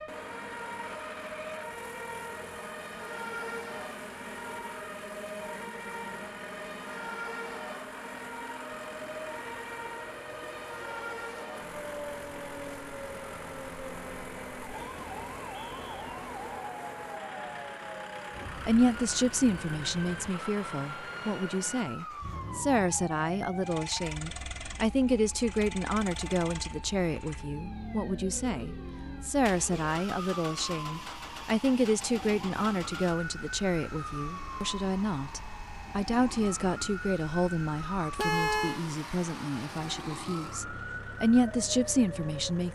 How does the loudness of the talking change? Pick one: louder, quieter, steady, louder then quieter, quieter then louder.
steady.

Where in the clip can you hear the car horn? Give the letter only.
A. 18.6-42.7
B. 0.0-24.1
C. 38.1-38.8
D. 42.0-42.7
C.